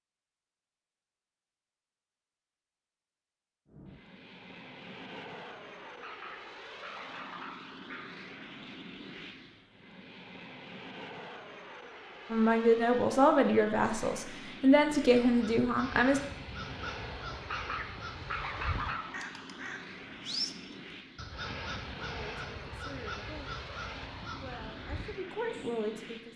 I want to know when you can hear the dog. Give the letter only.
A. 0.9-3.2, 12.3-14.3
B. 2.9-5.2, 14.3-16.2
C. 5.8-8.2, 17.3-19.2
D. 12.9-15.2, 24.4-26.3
C.